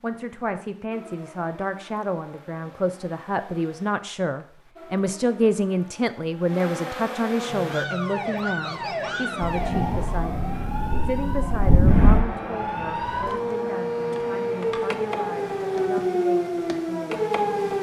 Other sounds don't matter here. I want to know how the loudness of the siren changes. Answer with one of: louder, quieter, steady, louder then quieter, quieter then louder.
louder.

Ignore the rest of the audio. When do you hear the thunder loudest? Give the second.
12 s.